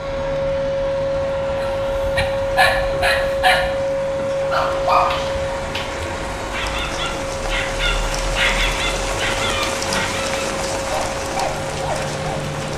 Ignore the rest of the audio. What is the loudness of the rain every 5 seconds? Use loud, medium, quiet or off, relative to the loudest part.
medium, loud, loud.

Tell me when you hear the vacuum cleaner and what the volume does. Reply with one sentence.
The vacuum cleaner can be heard from 0.0 to 12.7 s, getting quieter.